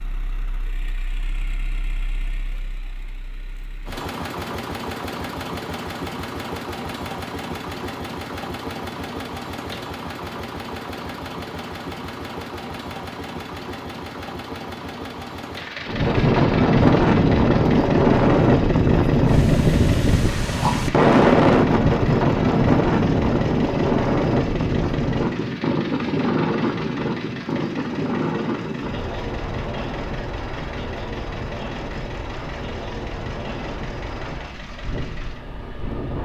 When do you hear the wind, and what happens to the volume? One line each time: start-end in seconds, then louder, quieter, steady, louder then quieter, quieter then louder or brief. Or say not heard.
15.8-36.1 quieter.